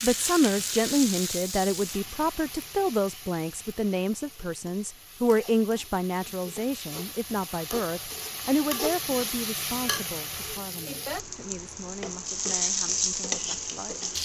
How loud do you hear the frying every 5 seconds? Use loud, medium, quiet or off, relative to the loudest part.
medium, medium, loud.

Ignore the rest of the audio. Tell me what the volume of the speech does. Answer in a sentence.
The loudness of the speech goes down.